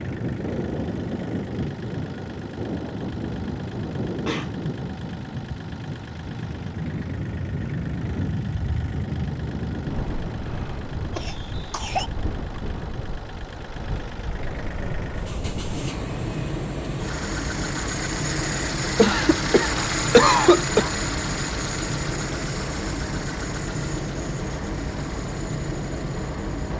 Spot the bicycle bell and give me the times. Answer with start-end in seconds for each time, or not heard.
not heard.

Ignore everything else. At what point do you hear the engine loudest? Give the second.
20 s.